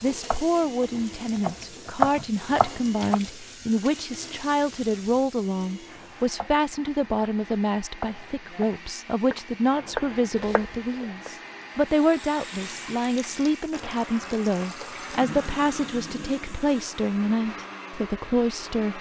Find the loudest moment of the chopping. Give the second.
2 s.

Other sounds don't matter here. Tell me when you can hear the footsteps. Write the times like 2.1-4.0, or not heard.
not heard.